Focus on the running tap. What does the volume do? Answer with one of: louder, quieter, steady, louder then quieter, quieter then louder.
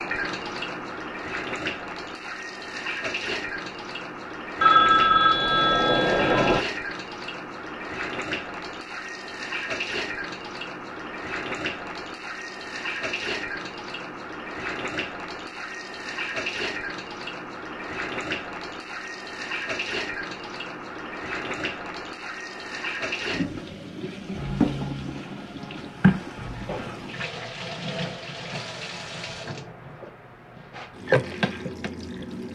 steady.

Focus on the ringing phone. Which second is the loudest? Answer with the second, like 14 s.
5 s.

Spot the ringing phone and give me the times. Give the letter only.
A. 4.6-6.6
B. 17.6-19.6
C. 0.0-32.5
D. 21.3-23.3
A.